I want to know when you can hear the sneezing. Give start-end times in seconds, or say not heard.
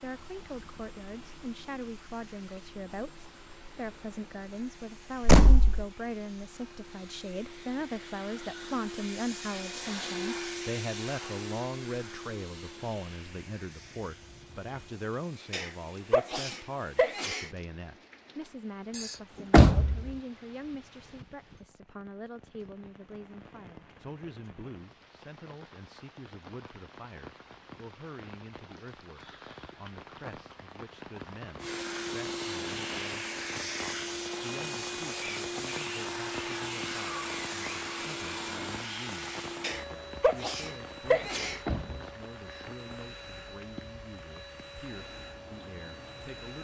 15.5-17.5, 39.6-41.6.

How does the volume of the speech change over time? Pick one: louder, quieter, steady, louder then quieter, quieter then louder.
quieter.